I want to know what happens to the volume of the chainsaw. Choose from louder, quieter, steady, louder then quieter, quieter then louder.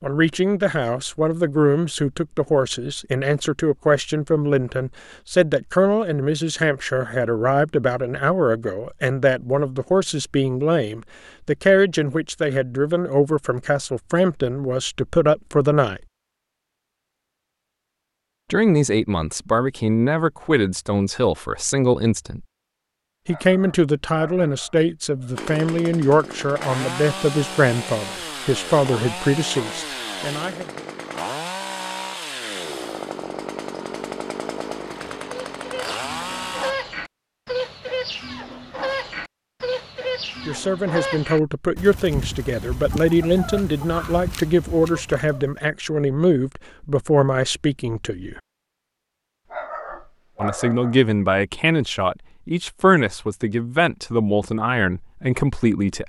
steady.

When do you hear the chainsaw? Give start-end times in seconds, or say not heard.
25.4-36.8.